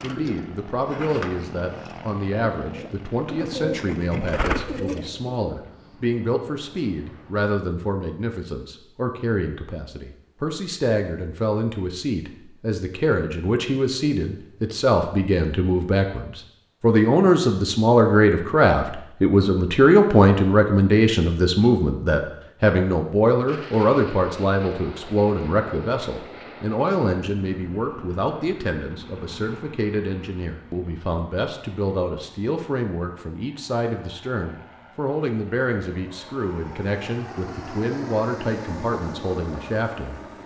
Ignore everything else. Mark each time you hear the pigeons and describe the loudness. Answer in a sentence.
The pigeons can be heard from 0.0 to 5.3 s, getting quieter then louder.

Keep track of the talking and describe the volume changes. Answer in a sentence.
The loudness of the talking goes up, then down.